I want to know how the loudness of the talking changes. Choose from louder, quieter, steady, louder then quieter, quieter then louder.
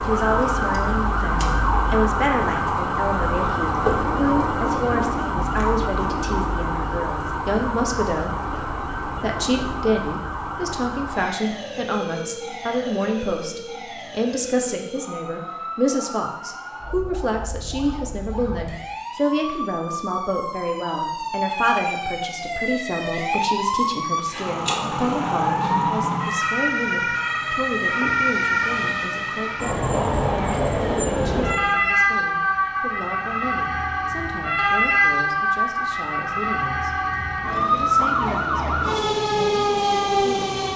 quieter.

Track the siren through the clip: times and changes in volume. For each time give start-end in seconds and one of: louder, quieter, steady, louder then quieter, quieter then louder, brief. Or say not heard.
0.0-40.7 quieter then louder.